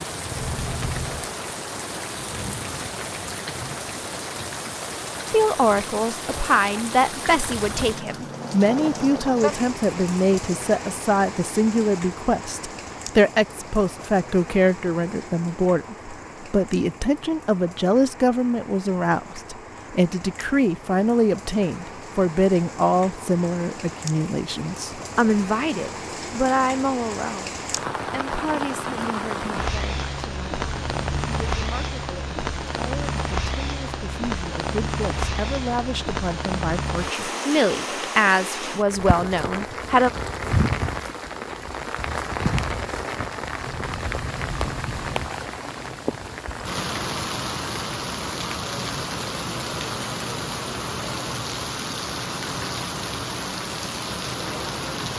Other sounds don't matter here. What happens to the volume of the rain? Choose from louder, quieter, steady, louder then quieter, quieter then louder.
quieter then louder.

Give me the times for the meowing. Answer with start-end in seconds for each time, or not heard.
0.3-1.3, 30.6-31.6, 43.6-45.4.